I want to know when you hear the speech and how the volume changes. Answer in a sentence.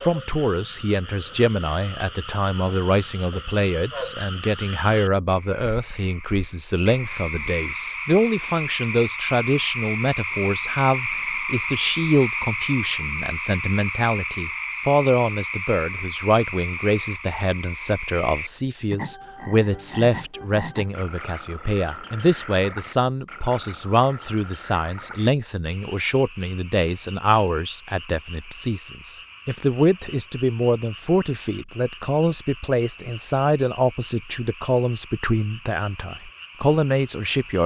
You can hear the speech from 0.0 to 37.6 s, at a steady volume.